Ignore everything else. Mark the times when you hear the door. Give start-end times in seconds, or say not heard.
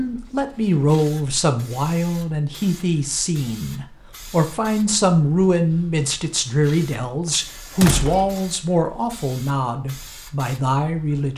7.2-8.4.